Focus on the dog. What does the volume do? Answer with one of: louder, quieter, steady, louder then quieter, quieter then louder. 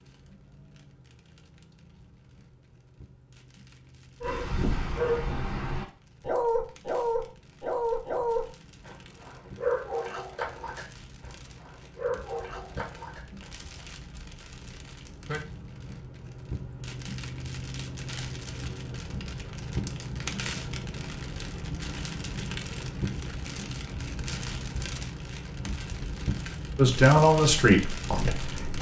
quieter.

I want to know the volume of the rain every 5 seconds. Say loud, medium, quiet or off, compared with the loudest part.
quiet, quiet, quiet, loud, loud, loud.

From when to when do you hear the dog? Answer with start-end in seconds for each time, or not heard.
4.2-13.8.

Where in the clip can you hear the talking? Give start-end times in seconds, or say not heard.
26.8-28.7.